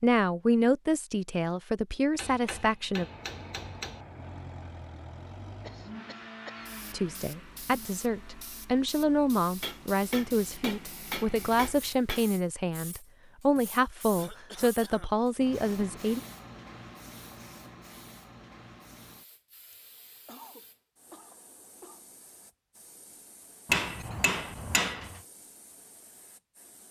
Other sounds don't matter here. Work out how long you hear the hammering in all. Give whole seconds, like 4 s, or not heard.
6 s.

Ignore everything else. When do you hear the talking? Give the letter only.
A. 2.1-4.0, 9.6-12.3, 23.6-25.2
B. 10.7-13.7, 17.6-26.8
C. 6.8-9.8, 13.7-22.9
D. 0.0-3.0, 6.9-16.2
D.